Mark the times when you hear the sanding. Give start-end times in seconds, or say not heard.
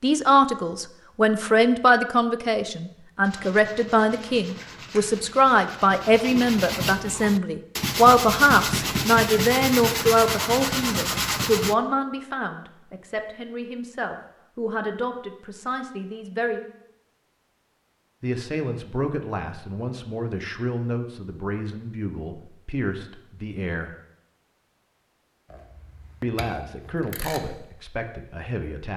3.2-11.8.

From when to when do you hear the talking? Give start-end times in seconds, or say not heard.
0.0-16.6, 18.2-23.9, 26.2-28.9.